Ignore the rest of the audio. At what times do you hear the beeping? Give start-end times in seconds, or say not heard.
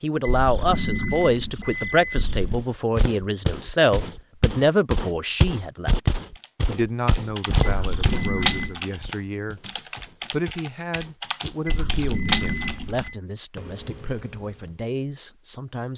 0.2-2.6, 7.6-8.8, 11.7-13.2.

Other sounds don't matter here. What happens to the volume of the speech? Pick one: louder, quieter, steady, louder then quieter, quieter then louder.
quieter.